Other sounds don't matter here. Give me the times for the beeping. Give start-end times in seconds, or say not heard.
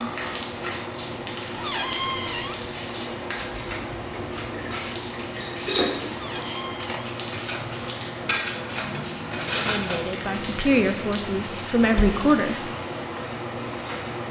not heard.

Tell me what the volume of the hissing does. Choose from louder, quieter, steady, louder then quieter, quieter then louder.
steady.